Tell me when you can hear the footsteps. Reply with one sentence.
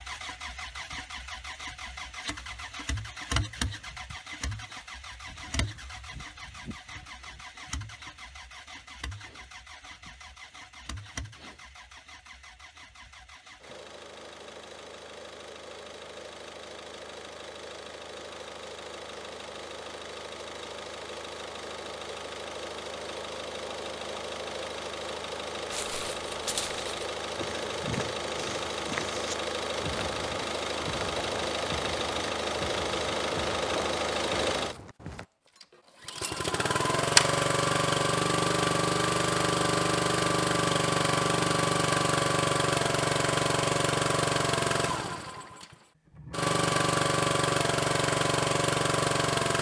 You can hear the footsteps from 25.7 to 35.2 s.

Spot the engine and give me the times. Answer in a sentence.
The engine can be heard from 0.0 to 49.5 s.